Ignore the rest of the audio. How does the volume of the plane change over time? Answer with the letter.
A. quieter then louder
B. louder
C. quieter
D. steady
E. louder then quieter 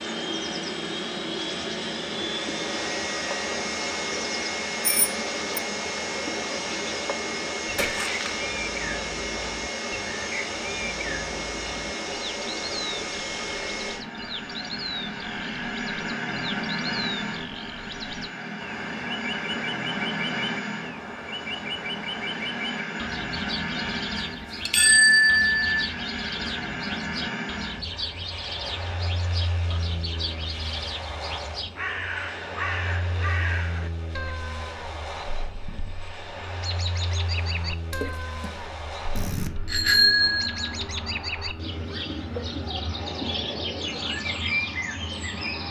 C.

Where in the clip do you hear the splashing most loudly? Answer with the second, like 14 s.
8 s.